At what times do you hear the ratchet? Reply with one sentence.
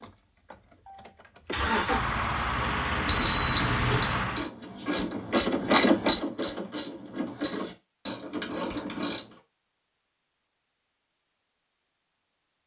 You can hear the ratchet from 2.5 to 9.3 s.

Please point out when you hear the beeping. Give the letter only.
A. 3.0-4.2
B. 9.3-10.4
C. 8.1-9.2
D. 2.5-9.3
A.